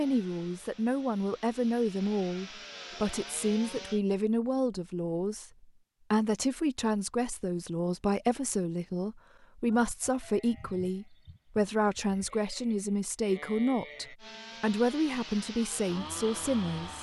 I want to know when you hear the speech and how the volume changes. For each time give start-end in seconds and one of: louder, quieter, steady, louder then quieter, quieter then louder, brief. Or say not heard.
0.0-16.9 steady.